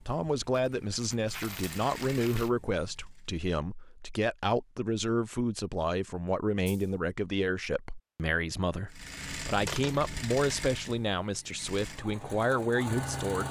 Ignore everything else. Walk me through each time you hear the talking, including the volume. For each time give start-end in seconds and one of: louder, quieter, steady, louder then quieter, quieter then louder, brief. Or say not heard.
0.0-13.4 steady.